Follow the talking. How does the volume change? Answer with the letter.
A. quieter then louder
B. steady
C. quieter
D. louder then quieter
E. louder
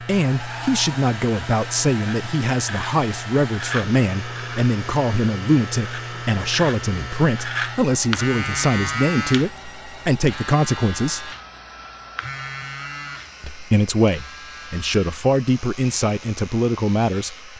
B.